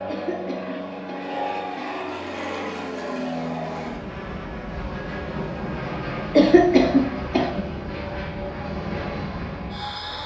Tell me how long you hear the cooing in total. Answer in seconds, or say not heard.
not heard.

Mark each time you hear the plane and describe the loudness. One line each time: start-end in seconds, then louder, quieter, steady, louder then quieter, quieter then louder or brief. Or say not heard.
0.0-10.2 steady.